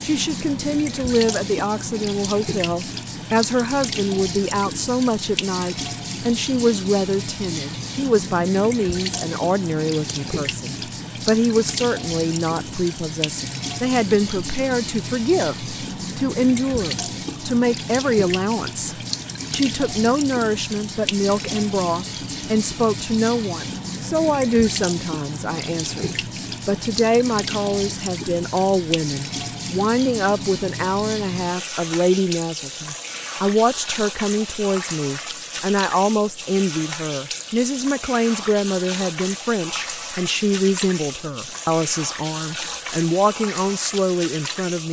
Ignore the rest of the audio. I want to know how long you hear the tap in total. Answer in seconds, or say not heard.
45 s.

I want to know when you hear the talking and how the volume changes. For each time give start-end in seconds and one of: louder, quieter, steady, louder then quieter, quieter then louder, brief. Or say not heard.
0.0-44.8 steady.